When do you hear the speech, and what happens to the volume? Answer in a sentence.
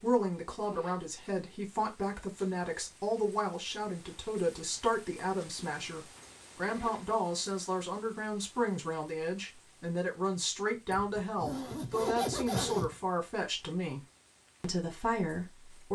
The speech can be heard from 0.0 to 14.0 s, at a steady volume; and briefly from 14.6 to 15.9 s.